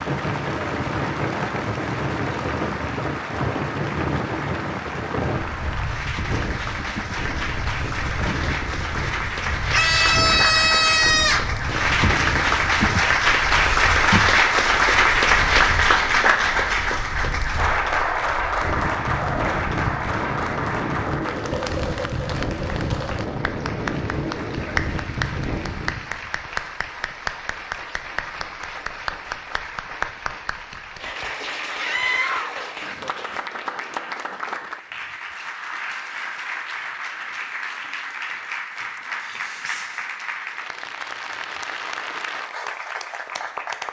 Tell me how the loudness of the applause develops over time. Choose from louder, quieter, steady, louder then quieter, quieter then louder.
louder then quieter.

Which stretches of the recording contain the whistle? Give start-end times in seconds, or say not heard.
not heard.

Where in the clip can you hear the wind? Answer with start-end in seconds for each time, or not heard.
0.0-26.1.